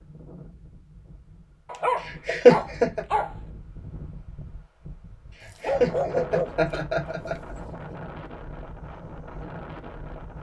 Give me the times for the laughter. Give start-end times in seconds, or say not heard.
2.0-3.0, 5.4-7.5.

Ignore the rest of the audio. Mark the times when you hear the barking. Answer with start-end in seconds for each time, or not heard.
1.6-3.4, 5.4-7.6.